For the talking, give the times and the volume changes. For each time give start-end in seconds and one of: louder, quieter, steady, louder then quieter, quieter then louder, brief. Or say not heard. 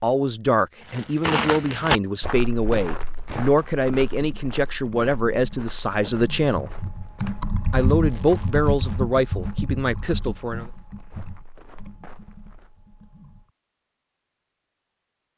0.0-6.8 steady
7.7-10.7 brief.